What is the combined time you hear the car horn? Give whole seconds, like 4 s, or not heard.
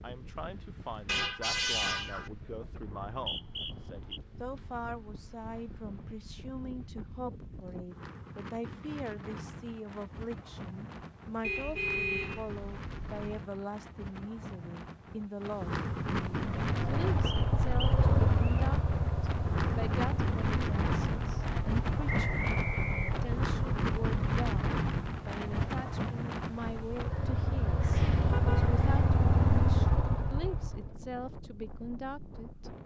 4 s.